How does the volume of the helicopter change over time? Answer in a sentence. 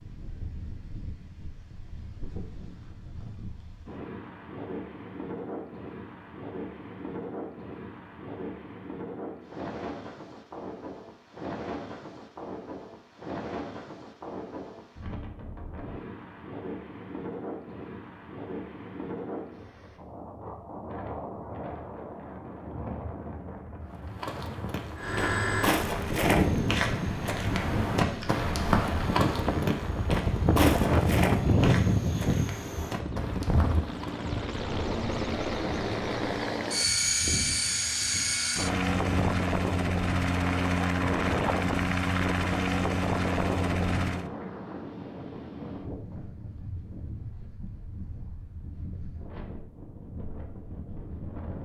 The loudness of the helicopter goes down, then up.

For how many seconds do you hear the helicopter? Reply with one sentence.
The helicopter can be heard for 19 seconds in total.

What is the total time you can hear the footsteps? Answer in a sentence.
The footsteps can be heard for 10 seconds in total.